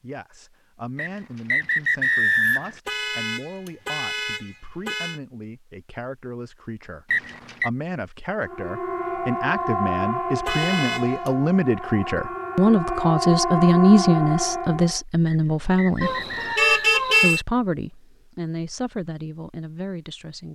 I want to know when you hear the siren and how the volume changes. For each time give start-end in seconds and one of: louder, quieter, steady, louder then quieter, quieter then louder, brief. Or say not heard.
8.3-15.0 quieter then louder.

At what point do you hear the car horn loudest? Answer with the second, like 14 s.
17 s.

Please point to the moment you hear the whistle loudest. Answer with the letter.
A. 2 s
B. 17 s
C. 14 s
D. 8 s
A.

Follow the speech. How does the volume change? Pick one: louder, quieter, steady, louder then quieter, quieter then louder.
louder then quieter.